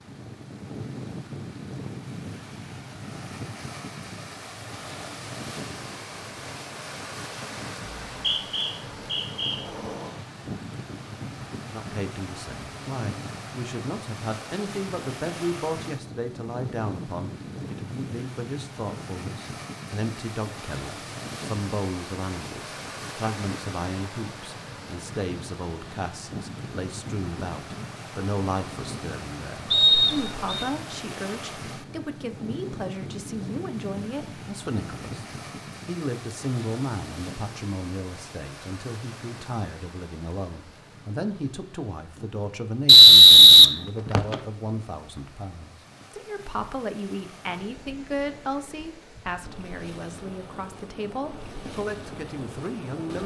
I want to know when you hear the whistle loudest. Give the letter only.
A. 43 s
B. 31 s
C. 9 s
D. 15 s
A.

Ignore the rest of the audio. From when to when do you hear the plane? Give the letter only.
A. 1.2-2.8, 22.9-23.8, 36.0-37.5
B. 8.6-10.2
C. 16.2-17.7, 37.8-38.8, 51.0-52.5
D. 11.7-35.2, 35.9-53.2
B.